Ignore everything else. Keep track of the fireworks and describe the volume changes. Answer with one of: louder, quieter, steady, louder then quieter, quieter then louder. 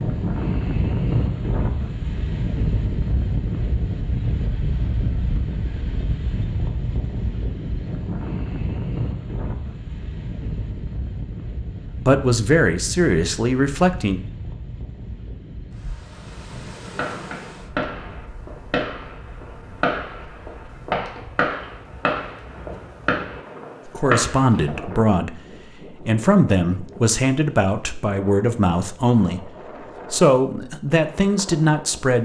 steady.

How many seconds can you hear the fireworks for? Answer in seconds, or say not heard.
8 s.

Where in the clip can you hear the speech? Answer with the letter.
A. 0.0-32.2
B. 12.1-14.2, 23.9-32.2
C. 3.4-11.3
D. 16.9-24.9
B.